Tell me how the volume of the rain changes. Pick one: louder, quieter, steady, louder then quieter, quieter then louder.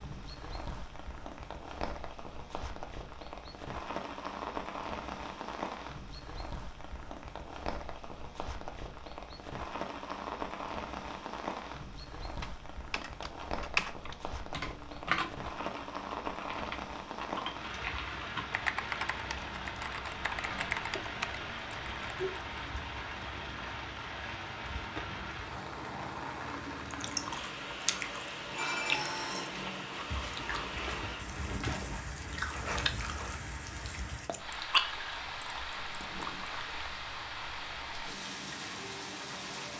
steady.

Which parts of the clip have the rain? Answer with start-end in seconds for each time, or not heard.
0.0-39.7.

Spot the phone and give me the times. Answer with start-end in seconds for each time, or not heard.
28.6-29.6.